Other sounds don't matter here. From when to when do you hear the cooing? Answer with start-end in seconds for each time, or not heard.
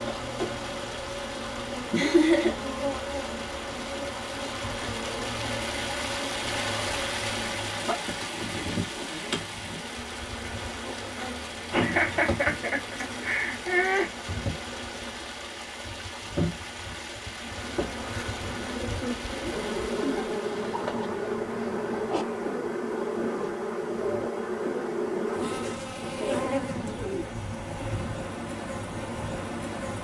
18.4-27.4.